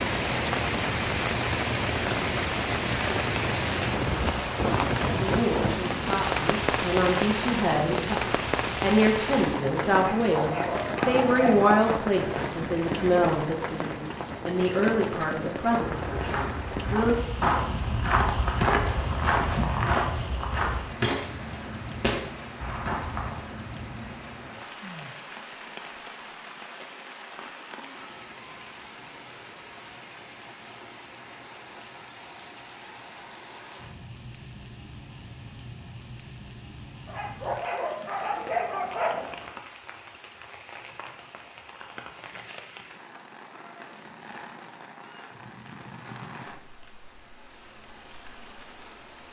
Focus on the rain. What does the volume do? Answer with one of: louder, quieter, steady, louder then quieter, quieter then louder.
quieter.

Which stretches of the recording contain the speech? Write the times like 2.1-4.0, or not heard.
5.2-17.1.